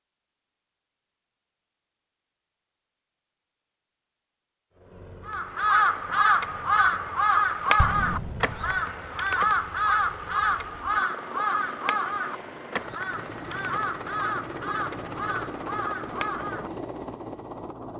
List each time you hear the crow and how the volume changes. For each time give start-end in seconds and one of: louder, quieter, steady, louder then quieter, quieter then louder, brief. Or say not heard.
5.2-16.7 quieter.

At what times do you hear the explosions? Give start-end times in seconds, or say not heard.
7.8-8.8.